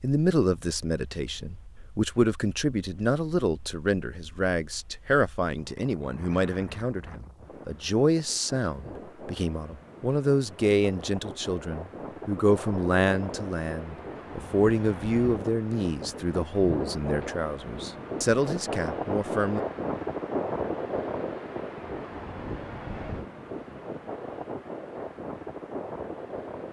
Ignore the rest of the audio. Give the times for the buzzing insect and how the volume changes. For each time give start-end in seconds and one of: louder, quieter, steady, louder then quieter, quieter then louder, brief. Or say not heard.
not heard.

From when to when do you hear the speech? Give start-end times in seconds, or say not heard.
0.0-19.6.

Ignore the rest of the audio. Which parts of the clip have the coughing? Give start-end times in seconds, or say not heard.
not heard.